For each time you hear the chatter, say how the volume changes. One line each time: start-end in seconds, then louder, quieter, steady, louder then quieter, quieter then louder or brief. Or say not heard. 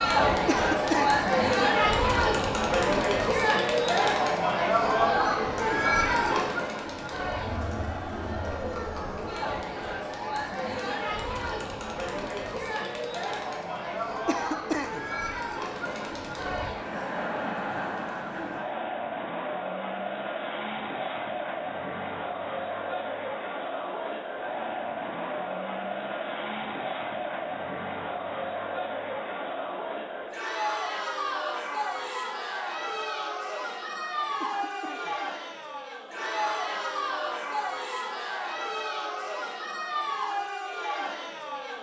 0.0-41.7 quieter.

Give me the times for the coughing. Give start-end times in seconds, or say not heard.
0.5-1.2, 14.2-15.1, 34.4-35.1.